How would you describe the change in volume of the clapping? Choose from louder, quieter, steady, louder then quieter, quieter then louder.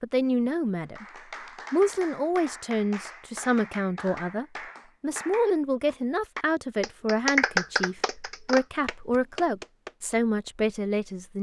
louder then quieter.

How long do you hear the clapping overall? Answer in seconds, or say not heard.
9 s.